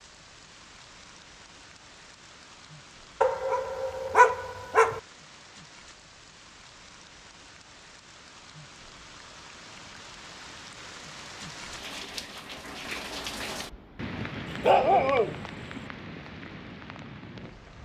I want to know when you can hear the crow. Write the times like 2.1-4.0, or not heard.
not heard.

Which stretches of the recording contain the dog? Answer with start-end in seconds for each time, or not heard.
3.2-5.0, 14.4-15.8.